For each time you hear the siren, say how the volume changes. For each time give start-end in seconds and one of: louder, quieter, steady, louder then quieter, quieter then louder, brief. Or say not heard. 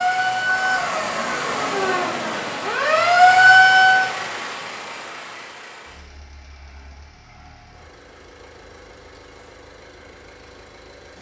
0.0-4.1 quieter then louder.